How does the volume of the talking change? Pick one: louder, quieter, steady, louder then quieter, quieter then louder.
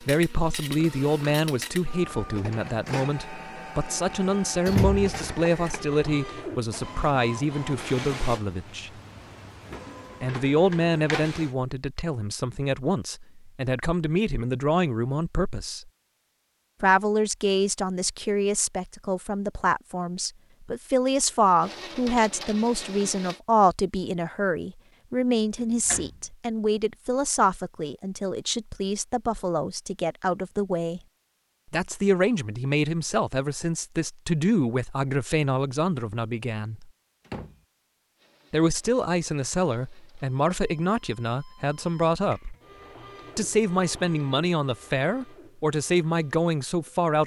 steady.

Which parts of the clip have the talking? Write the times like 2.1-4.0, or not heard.
0.0-8.9, 10.2-15.9, 16.8-31.0, 31.7-36.9, 38.5-42.5, 43.4-47.2.